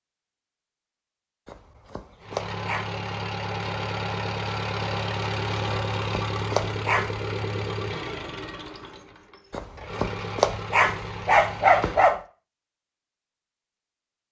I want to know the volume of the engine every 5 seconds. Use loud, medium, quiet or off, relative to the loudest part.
loud, loud, medium.